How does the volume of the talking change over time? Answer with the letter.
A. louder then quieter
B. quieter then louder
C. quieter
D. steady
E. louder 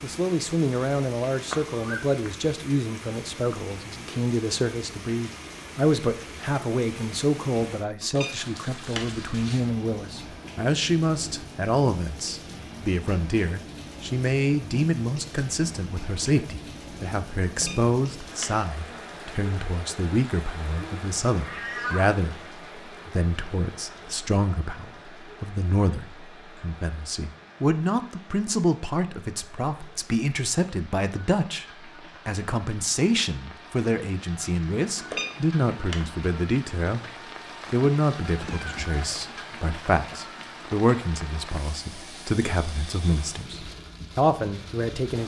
D.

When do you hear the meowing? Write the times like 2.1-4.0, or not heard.
1.5-2.3, 20.8-22.2, 38.2-39.2.